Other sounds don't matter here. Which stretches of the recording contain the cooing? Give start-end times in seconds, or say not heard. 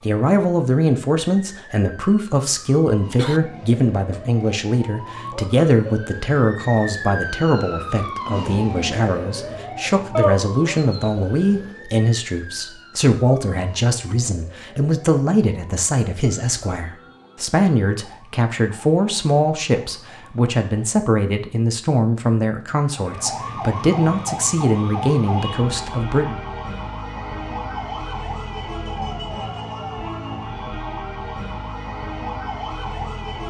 10.2-11.7.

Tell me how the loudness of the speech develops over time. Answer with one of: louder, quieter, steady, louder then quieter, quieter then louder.
steady.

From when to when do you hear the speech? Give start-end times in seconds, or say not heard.
0.0-26.4.